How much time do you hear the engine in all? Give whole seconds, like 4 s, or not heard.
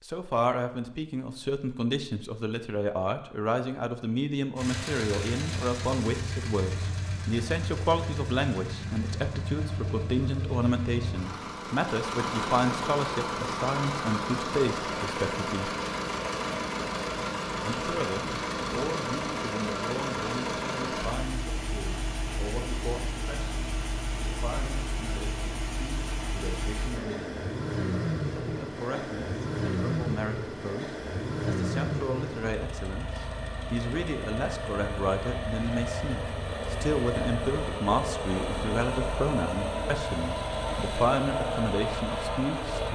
38 s.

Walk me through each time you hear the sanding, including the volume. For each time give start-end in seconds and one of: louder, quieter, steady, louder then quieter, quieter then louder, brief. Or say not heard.
not heard.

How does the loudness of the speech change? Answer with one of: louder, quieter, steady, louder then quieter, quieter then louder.
quieter then louder.